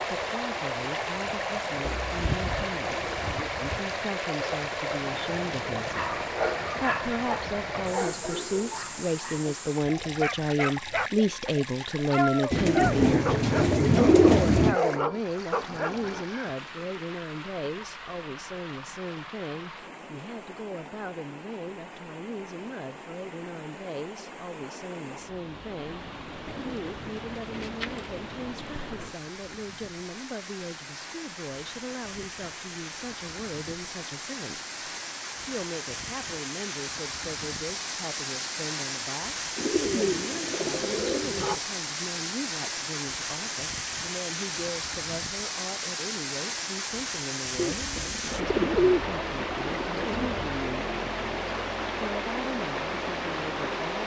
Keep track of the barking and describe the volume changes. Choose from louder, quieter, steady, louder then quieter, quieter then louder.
quieter then louder.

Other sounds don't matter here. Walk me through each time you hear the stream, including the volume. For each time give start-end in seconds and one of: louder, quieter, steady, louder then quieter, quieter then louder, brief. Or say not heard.
0.0-54.0 quieter then louder.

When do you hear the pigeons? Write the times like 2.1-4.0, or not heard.
1.8-3.8, 12.5-14.8, 26.4-28.2, 39.5-41.6, 47.5-50.3.